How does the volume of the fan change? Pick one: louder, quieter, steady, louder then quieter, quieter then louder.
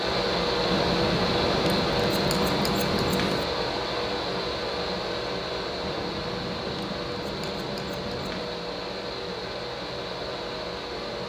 quieter.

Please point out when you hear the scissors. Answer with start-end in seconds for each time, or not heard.
0.7-3.5, 5.8-8.6.